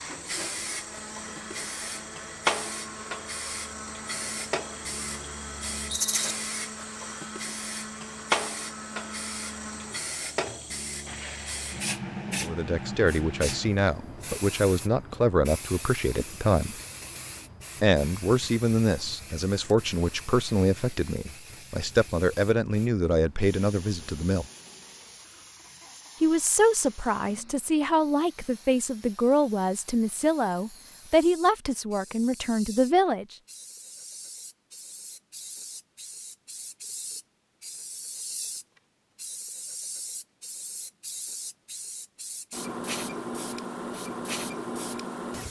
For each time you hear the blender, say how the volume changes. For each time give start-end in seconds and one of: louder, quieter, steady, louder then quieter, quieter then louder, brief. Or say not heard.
0.0-12.0 steady.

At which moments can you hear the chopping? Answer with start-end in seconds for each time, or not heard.
not heard.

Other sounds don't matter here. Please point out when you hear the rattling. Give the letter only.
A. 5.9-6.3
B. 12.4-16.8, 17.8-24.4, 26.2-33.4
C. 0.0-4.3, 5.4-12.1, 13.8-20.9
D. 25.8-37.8
A.